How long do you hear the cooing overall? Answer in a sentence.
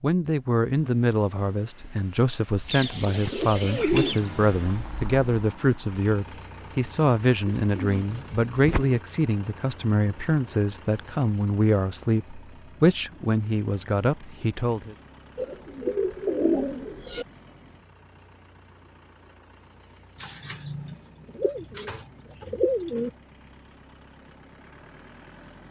The cooing can be heard for 8 seconds in total.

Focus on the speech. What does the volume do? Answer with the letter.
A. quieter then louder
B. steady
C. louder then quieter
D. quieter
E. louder
B.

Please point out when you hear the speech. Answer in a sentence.
The speech can be heard from 0.0 to 14.9 s.